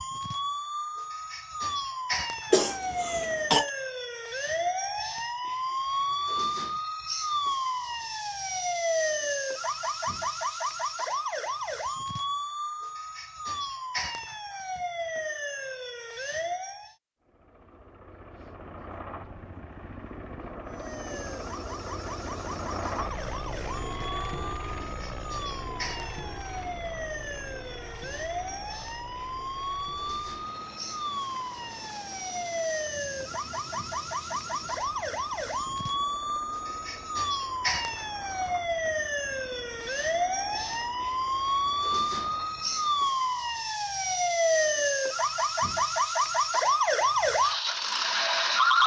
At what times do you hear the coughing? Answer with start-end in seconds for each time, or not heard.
2.5-3.7.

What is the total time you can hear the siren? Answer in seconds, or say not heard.
45 s.